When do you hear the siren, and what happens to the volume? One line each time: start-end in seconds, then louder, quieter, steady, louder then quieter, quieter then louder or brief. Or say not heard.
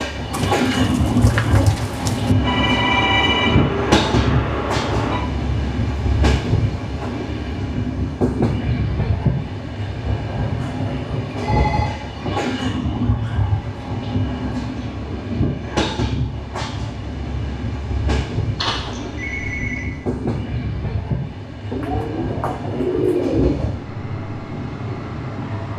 not heard.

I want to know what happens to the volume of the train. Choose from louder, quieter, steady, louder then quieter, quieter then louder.
quieter.